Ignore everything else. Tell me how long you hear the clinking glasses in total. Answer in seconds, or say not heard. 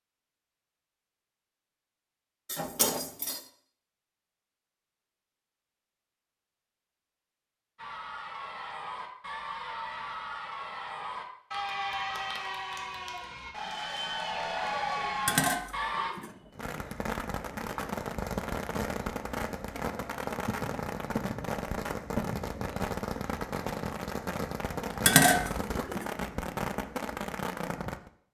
4 s.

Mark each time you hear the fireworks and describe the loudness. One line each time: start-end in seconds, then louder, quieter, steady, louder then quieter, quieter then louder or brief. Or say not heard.
16.5-28.1 steady.